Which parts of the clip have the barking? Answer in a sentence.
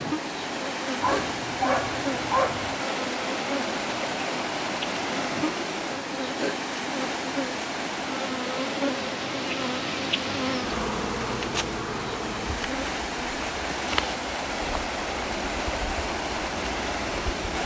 The barking can be heard from 1.0 to 2.9 s.